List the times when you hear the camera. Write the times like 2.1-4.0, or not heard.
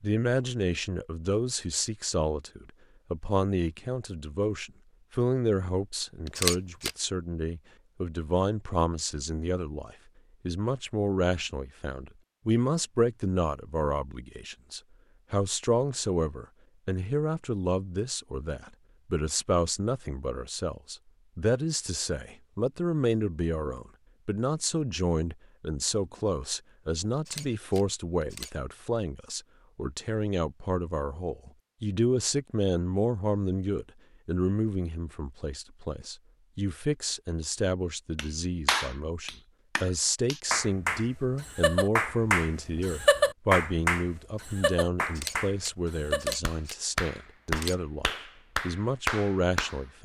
6.2-6.9, 27.1-28.5, 45.0-47.8.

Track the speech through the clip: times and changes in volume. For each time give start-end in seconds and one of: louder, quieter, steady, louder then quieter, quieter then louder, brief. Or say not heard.
0.0-50.0 steady.